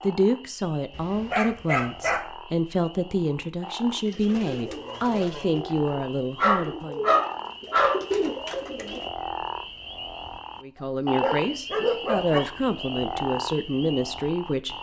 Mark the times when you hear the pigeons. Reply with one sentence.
The pigeons can be heard from 3.9 to 9.1 s.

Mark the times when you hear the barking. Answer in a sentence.
You can hear the barking from 0.9 to 2.2 s, from 6.3 to 8.0 s and from 11.2 to 12.4 s.